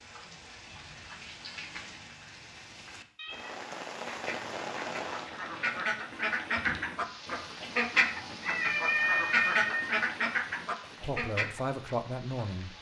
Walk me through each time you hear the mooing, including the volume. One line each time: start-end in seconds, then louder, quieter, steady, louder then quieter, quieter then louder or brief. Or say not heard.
not heard.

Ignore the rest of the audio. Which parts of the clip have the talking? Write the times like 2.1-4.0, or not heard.
11.0-12.7.